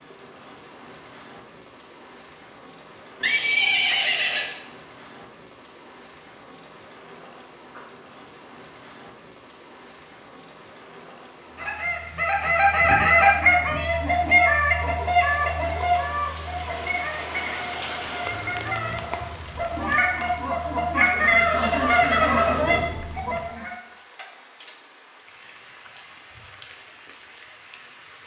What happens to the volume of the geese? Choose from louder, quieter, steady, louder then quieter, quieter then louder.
quieter then louder.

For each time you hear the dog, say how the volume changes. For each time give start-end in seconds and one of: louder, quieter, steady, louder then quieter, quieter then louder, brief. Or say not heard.
not heard.